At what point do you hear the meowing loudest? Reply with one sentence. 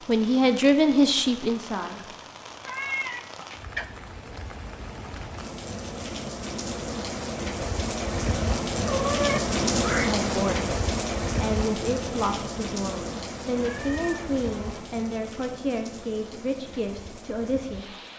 The loudest moment of the meowing is at 9 seconds.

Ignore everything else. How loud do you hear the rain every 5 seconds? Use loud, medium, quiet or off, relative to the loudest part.
quiet, loud, loud, quiet.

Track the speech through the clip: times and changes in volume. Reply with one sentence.
The speech can be heard briefly from 0.1 to 2.0 s; and from 10.0 to 17.9 s, at a steady volume.